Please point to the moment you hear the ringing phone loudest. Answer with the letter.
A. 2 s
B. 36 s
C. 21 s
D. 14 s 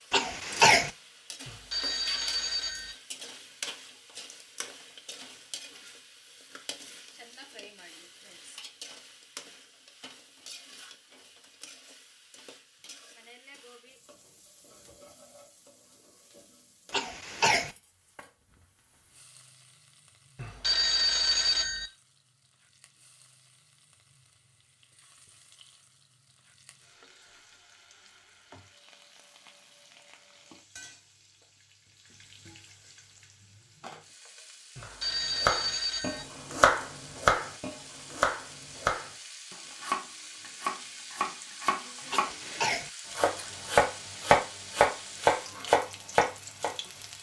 C.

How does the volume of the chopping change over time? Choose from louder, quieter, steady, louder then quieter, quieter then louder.
quieter then louder.